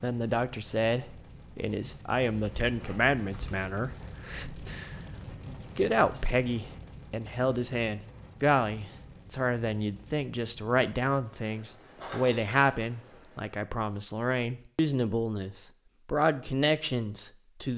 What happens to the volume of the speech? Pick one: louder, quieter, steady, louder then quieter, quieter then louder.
steady.